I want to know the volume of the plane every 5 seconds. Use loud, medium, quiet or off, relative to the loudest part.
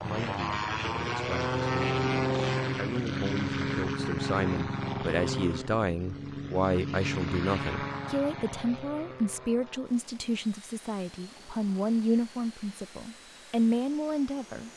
loud, medium, quiet.